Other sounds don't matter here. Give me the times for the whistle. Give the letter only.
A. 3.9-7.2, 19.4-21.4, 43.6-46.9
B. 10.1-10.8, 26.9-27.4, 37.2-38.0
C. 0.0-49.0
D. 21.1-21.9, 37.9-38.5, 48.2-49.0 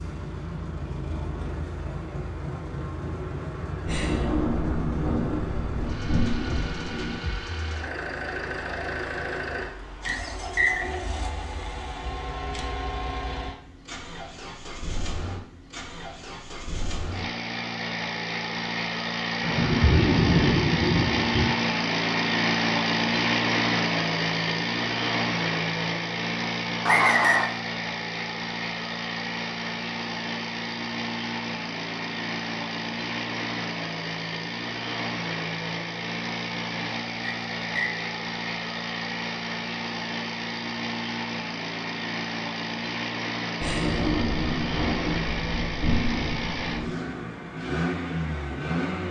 B.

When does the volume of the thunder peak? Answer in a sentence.
The loudest moment of the thunder is at 20 seconds.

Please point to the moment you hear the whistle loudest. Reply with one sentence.
The volume of the whistle peaks at 27 seconds.